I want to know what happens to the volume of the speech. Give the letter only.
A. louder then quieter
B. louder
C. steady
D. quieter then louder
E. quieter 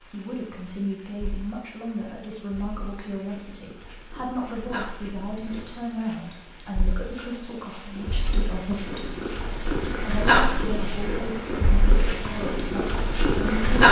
C.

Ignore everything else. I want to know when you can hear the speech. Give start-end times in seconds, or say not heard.
0.0-9.1, 10.0-13.7.